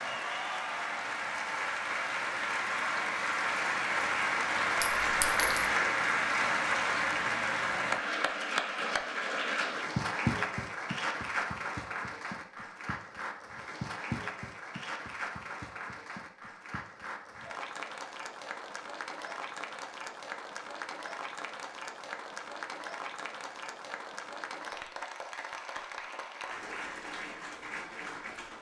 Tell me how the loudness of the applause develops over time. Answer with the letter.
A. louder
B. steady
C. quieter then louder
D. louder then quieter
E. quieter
E.